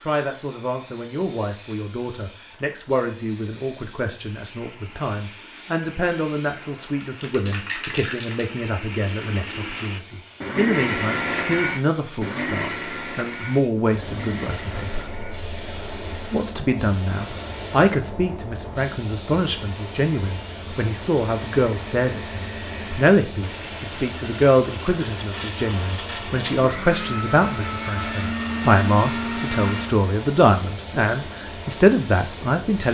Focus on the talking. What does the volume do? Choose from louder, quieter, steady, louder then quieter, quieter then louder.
louder.